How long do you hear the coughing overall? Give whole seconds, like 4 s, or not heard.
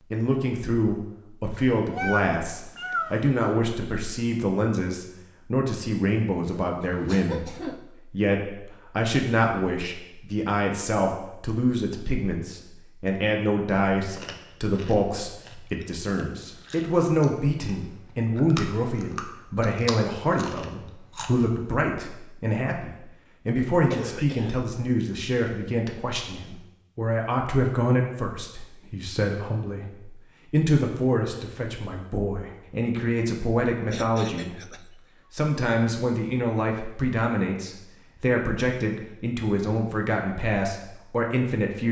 3 s.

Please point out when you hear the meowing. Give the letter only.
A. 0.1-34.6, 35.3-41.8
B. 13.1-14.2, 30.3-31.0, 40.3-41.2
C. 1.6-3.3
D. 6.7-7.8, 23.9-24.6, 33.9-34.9
C.